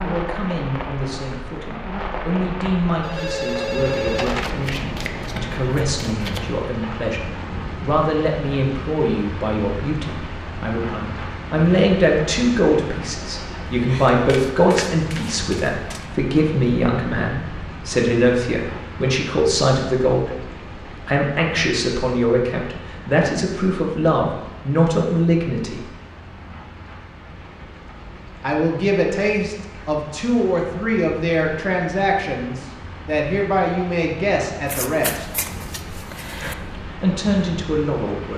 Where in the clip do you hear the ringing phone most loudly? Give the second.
4 s.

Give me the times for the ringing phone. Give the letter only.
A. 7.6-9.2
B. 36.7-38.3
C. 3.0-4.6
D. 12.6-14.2
C.